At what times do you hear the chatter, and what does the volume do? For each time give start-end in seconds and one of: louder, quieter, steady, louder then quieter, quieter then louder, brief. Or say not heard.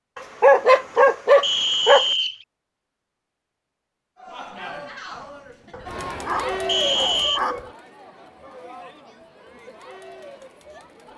4.2-11.1 louder then quieter.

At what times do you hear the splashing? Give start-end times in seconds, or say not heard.
not heard.